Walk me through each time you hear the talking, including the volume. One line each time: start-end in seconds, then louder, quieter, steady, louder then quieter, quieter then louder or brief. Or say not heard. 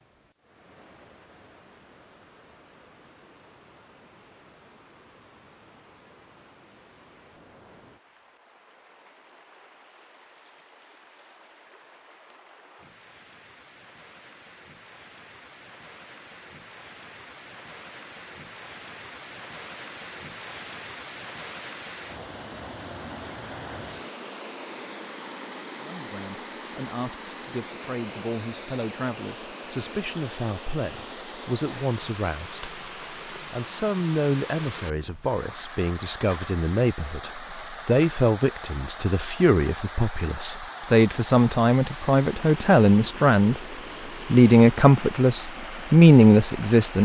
25.8-43.6 louder
44.3-47.0 brief.